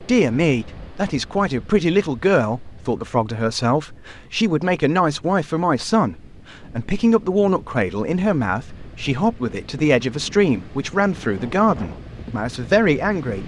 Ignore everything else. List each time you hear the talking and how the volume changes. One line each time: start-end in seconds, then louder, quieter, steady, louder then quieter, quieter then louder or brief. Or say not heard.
0.0-13.4 steady.